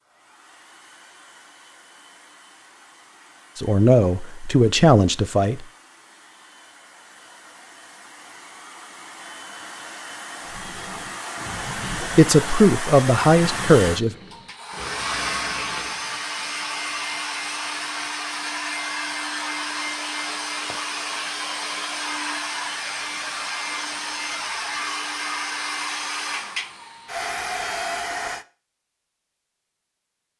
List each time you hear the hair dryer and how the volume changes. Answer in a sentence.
The hair dryer can be heard from 0.0 to 28.4 s, getting louder.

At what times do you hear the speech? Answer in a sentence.
The speech can be heard from 3.5 to 5.7 s and from 12.0 to 14.2 s.